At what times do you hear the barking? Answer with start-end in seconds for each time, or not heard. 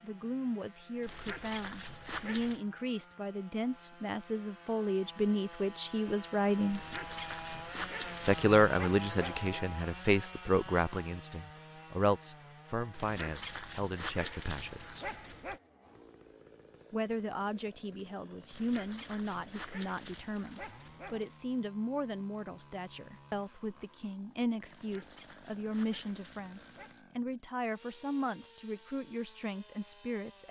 1.0-2.6, 6.7-9.6, 12.9-15.6, 18.4-21.3, 24.6-27.0.